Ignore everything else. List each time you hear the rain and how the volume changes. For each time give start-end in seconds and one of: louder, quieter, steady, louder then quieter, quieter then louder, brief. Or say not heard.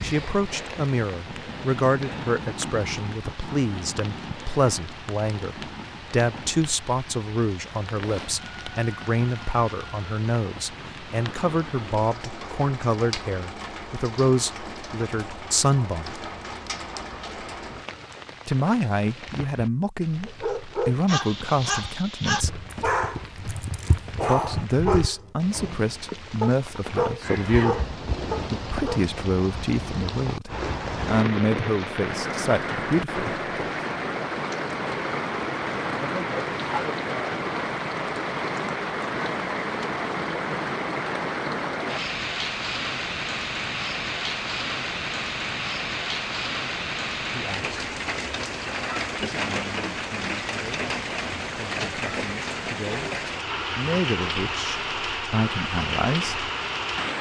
0.0-57.1 louder.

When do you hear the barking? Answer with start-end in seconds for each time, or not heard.
20.2-29.0.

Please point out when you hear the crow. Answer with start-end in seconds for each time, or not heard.
not heard.